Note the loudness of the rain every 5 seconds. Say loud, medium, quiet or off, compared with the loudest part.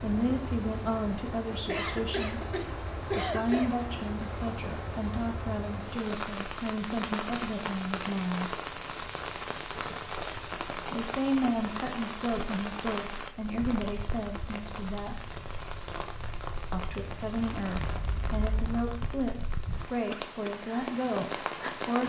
loud, loud, loud, medium, loud.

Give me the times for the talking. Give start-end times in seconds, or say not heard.
0.0-8.6, 10.8-15.2, 16.7-22.0.